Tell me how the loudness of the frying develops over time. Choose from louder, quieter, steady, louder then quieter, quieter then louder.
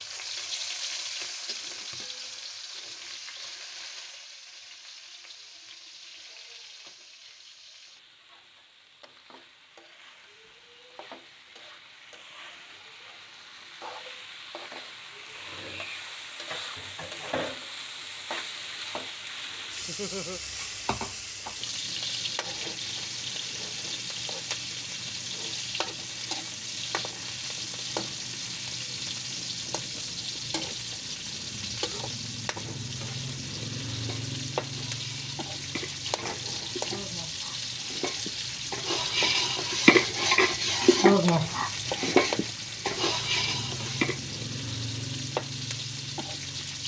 louder.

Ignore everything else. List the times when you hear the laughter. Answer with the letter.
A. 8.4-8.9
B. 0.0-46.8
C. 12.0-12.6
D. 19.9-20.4
D.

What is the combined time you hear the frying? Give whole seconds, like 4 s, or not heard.
47 s.